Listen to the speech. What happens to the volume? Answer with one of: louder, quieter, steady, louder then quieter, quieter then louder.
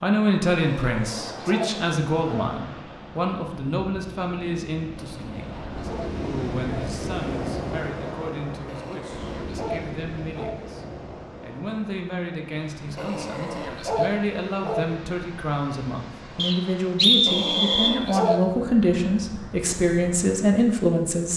quieter then louder.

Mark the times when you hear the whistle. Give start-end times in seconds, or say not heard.
16.4-17.9.